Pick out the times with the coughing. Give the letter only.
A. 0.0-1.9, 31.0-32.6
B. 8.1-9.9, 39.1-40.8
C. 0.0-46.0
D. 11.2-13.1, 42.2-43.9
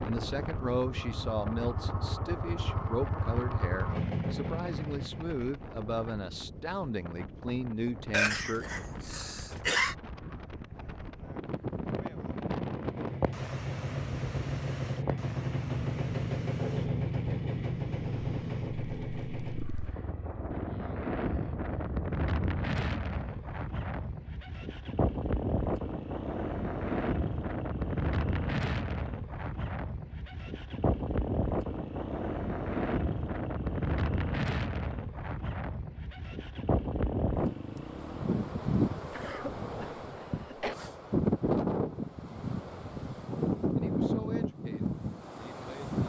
B.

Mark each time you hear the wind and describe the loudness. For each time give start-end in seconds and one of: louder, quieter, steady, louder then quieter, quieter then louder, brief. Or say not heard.
0.0-46.0 louder.